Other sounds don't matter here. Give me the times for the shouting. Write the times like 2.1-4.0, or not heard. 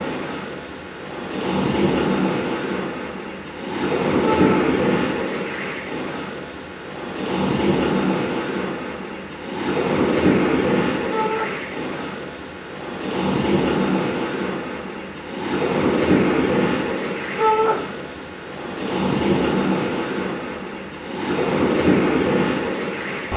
4.2-4.7, 11.1-11.5, 17.4-17.8.